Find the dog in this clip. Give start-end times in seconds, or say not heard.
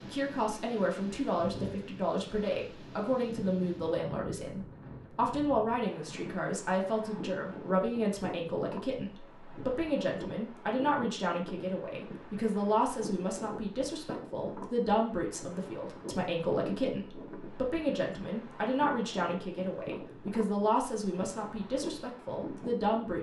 not heard.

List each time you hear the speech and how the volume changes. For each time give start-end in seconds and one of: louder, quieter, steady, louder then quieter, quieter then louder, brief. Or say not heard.
0.0-23.1 steady.